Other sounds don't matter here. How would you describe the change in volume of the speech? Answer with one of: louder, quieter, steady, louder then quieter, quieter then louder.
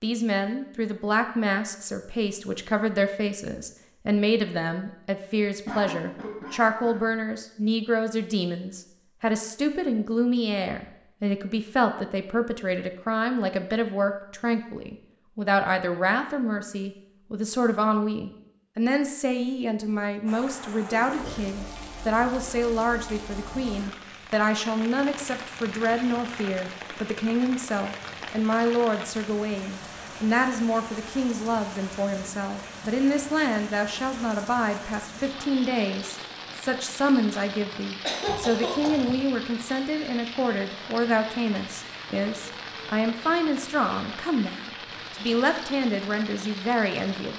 steady.